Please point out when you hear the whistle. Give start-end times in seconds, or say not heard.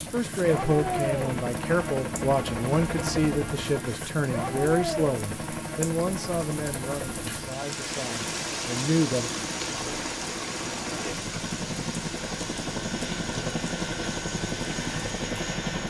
not heard.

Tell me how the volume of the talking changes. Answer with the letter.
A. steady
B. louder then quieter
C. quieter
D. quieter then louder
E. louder
C.